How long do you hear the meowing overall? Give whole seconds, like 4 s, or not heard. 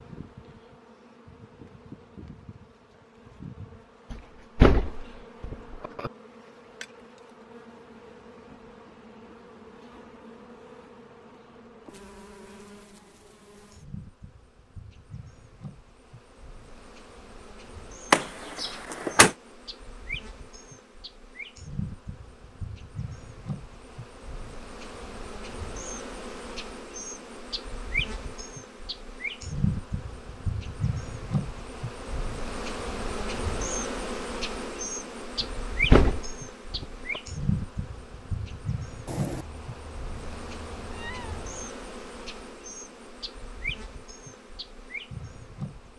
3 s.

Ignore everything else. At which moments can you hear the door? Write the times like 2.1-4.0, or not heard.
4.1-6.1, 18.1-19.4, 35.4-37.2.